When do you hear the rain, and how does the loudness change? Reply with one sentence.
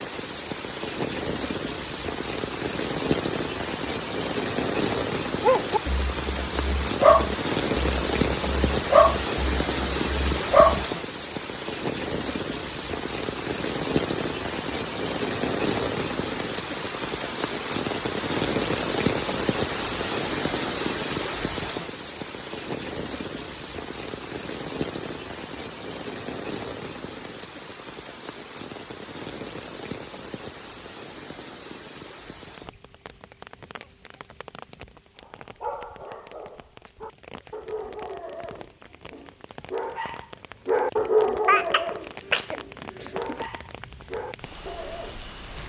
You can hear the rain from 0.0 to 45.6 s, getting quieter.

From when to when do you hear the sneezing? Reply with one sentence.
The sneezing can be heard from 41.5 to 43.5 s.